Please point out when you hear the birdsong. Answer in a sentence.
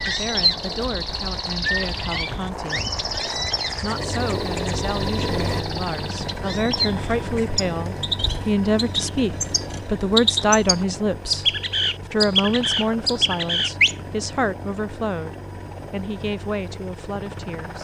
You can hear the birdsong from 0.0 to 14.1 s.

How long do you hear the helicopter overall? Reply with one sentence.
The helicopter can be heard for 18 seconds in total.